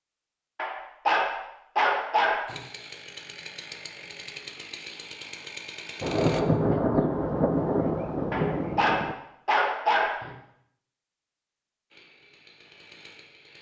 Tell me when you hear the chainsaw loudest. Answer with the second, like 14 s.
6 s.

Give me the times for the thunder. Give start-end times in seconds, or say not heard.
6.0-9.2.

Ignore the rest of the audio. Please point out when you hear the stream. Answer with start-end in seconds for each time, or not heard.
not heard.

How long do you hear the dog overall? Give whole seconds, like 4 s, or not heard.
4 s.